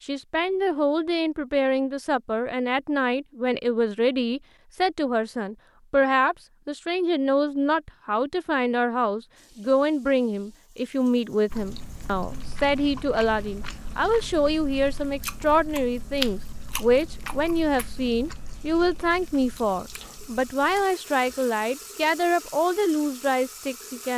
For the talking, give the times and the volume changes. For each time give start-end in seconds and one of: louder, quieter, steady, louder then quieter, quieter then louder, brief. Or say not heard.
0.0-24.1 steady.